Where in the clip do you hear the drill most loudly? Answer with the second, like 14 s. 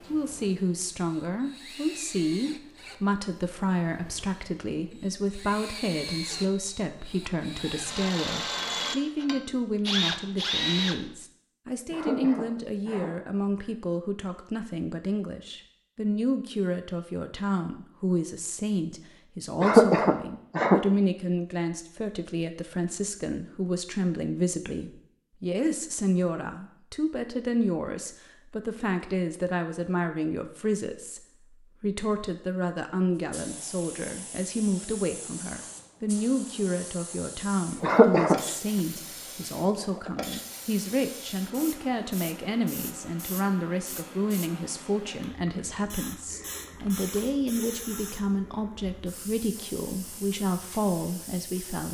10 s.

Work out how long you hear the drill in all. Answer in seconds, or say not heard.
11 s.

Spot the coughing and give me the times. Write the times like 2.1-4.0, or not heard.
11.9-13.1, 19.6-20.8, 37.8-38.4.